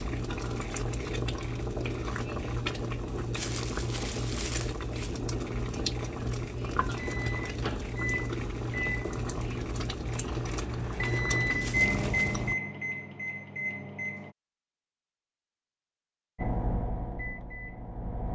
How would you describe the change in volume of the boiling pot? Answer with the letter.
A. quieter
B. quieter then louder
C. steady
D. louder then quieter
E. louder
C.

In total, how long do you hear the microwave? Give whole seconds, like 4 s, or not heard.
9 s.